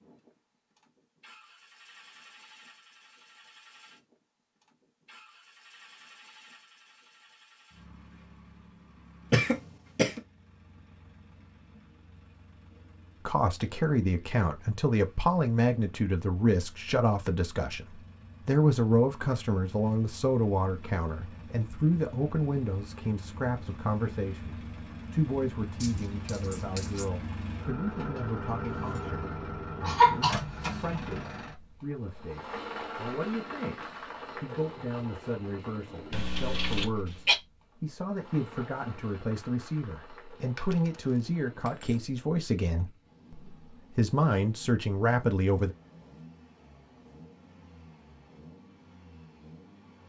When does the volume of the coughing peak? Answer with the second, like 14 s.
30 s.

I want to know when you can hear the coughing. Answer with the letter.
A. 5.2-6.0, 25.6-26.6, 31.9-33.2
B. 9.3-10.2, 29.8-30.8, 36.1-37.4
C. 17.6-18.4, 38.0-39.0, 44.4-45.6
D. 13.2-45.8
B.